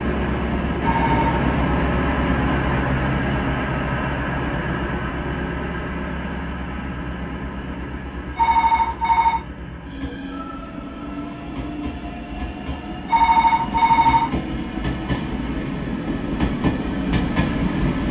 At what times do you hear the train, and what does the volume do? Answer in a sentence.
The train can be heard from 0.0 to 18.0 s, getting quieter then louder.